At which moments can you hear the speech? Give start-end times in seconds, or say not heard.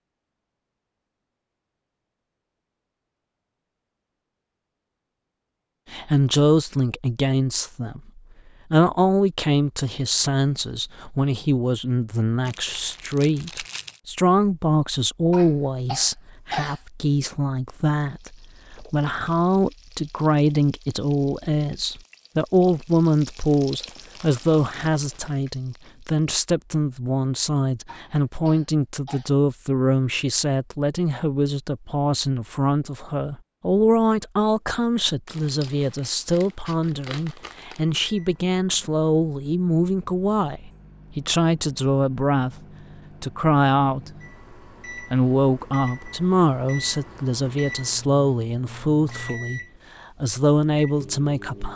5.9-42.5, 43.2-44.1, 45.0-51.7.